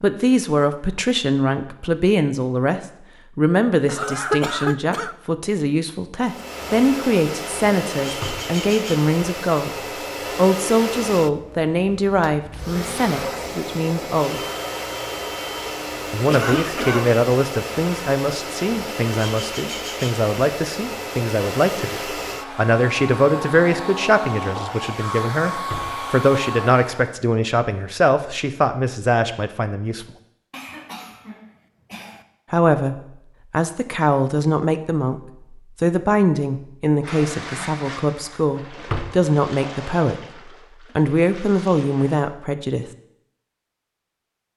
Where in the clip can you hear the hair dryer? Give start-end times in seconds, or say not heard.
6.2-27.2.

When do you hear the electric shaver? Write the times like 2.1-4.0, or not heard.
not heard.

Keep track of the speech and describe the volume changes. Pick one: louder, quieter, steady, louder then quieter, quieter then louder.
steady.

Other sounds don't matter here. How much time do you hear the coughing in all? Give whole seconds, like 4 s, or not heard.
4 s.